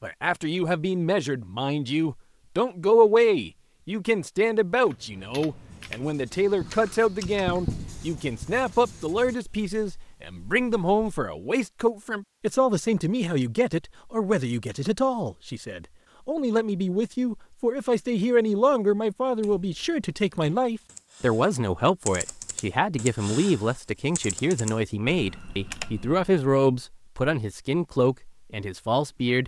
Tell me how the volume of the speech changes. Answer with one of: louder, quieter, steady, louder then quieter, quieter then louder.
steady.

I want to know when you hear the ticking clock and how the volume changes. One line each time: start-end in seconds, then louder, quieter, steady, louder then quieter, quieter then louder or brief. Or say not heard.
not heard.